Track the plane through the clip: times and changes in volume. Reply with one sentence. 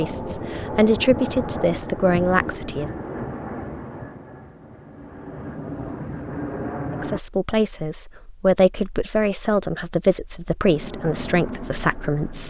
You can hear the plane from 0.0 to 7.2 s, getting quieter then louder; and briefly from 10.6 to 12.4 s.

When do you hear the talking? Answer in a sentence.
The talking can be heard from 0.0 to 3.0 s and from 6.9 to 12.4 s.